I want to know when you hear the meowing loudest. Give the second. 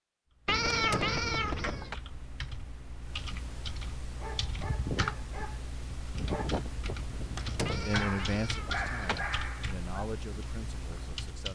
1 s.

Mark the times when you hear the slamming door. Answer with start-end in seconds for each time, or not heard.
0.7-1.3, 7.3-8.0.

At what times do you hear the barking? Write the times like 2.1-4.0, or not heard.
4.0-9.8.